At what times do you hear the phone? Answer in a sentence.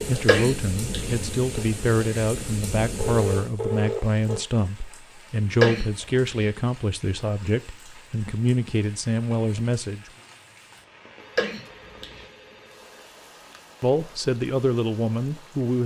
You can hear the phone from 3.0 to 4.4 s and from 11.2 to 13.6 s.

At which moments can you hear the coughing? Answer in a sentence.
You can hear the coughing from 0.2 to 1.1 s, from 5.6 to 6.5 s and from 11.3 to 12.2 s.